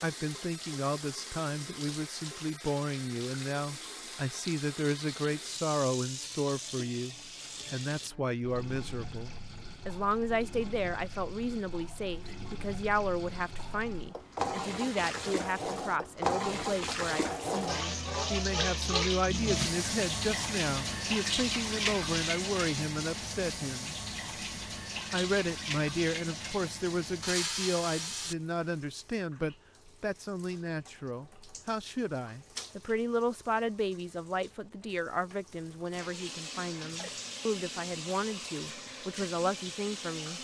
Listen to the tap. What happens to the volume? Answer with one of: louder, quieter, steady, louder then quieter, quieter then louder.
louder then quieter.